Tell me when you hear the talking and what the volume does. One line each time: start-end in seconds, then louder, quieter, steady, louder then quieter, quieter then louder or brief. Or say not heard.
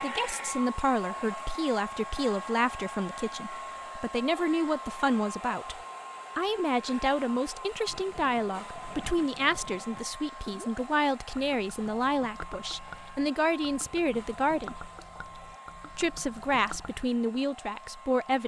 0.0-14.9 steady
15.9-18.4 brief.